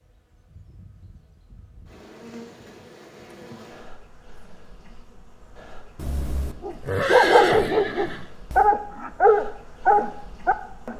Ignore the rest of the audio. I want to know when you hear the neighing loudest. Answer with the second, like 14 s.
7 s.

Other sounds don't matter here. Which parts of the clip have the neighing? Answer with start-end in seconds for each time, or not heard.
6.0-8.7.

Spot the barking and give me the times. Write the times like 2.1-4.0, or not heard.
6.7-10.9.